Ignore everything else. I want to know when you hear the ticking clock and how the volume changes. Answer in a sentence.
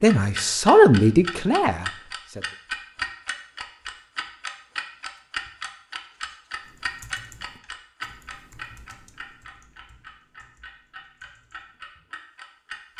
The ticking clock can be heard from 0.1 to 12.9 s, getting quieter.